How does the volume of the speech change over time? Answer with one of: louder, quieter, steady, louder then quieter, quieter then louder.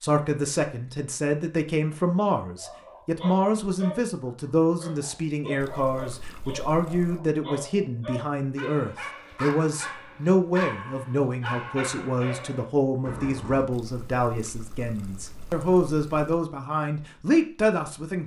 steady.